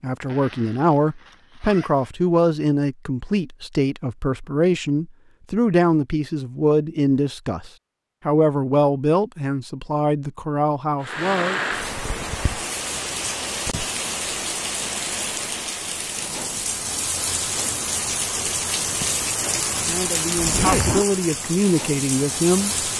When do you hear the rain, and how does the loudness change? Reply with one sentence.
You can hear the rain from 11.0 to 22.9 s, at a steady volume.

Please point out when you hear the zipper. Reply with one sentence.
You can hear the zipper from 0.2 to 2.1 s and from 20.4 to 21.1 s.